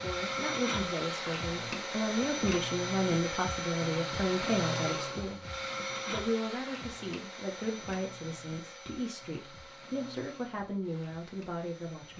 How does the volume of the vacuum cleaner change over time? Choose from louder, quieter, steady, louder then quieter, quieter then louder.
quieter.